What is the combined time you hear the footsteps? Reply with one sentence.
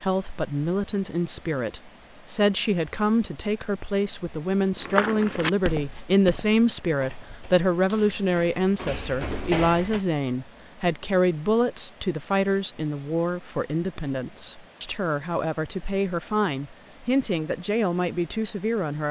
You can hear the footsteps for 5 seconds altogether.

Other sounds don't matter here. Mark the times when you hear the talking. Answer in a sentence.
You can hear the talking from 0.0 to 19.0 s.